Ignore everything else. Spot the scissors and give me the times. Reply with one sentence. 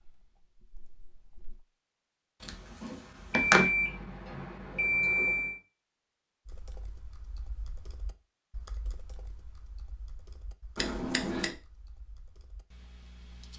The scissors can be heard from 2.4 to 3.7 s and from 10.8 to 11.5 s.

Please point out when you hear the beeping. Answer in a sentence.
The beeping can be heard from 3.3 to 5.6 s.